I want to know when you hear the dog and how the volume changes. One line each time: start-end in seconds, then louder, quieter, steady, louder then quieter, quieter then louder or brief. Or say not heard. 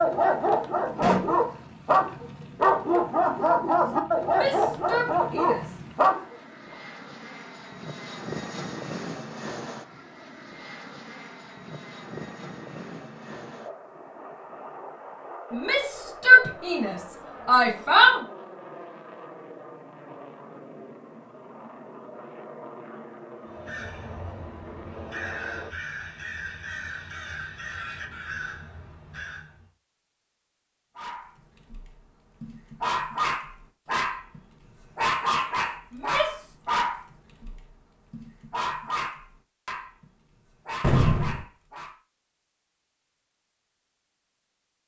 0.0-6.3 steady
30.9-42.0 quieter.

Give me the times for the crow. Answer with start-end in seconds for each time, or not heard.
23.4-29.6.